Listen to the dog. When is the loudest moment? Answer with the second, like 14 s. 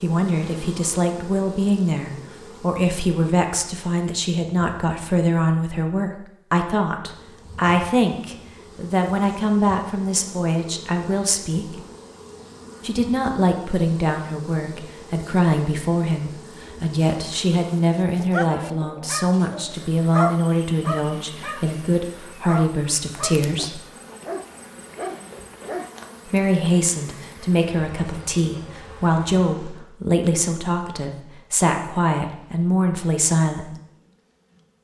20 s.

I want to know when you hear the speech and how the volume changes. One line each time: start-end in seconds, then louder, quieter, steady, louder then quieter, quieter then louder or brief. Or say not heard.
0.0-11.8 steady
12.8-23.8 steady
26.2-33.8 steady.